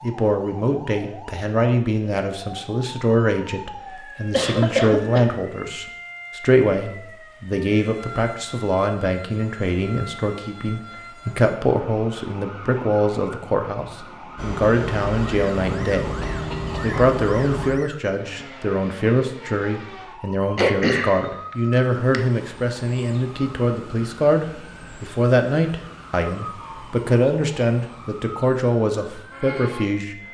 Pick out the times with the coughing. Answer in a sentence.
You can hear the coughing from 4.3 to 5.2 s, from 16.1 to 17.0 s and from 20.6 to 22.2 s.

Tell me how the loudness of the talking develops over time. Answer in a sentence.
The loudness of the talking stays about the same.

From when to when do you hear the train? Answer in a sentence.
You can hear the train from 14.3 to 17.7 s.